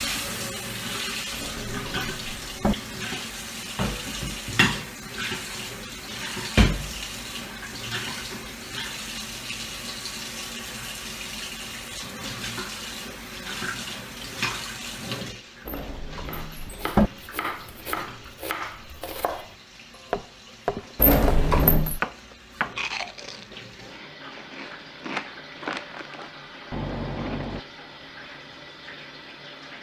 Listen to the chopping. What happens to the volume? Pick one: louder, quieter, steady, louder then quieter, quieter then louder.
louder.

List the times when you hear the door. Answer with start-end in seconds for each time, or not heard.
1.3-2.8, 15.7-17.1, 20.9-22.0.